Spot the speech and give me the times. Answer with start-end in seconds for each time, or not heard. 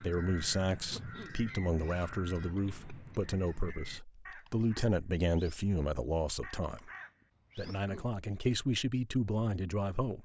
0.0-6.9, 7.5-10.1.